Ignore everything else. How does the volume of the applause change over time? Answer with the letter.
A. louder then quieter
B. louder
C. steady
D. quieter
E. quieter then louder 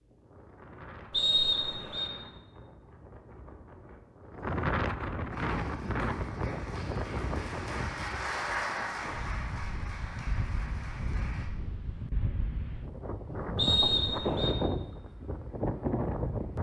A.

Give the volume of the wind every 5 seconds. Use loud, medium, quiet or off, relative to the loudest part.
medium, loud, loud, loud.